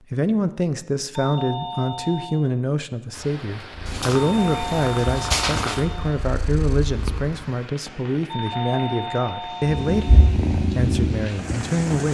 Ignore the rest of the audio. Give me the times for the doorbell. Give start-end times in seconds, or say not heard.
1.1-2.4, 4.2-6.2, 8.3-10.3.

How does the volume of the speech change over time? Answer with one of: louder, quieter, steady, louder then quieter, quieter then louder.
steady.